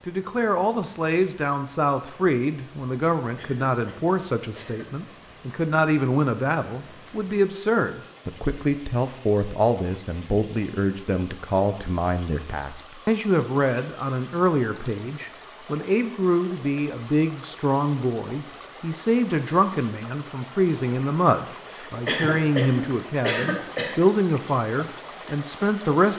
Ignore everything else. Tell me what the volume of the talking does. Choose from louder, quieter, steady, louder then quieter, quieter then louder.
steady.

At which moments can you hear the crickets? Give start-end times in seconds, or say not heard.
not heard.